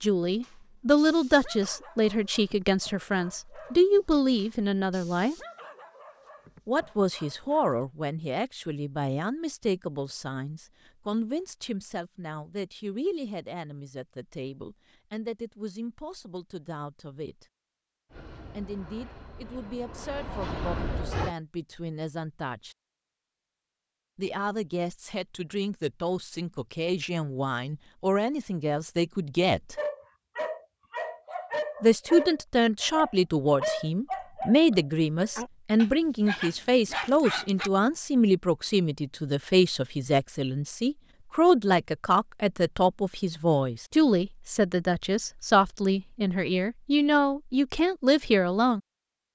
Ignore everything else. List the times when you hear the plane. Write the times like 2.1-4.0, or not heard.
18.1-21.4.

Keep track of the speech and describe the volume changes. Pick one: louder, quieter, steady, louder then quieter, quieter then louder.
quieter then louder.